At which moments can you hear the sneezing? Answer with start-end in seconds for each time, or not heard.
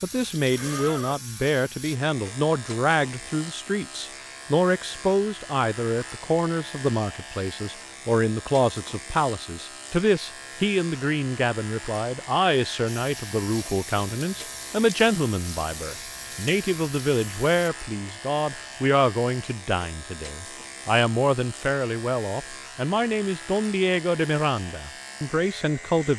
not heard.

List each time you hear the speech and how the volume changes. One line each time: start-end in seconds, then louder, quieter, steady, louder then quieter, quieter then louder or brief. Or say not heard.
0.0-26.1 steady.